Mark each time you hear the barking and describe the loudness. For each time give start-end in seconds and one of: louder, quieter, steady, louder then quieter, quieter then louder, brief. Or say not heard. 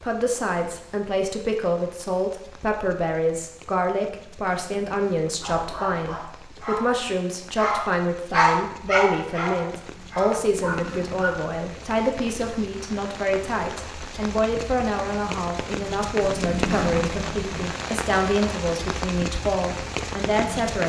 5.4-11.5 louder then quieter.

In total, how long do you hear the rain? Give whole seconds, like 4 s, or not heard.
21 s.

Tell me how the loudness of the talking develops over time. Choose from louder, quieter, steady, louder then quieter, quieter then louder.
steady.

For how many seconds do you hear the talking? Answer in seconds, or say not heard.
21 s.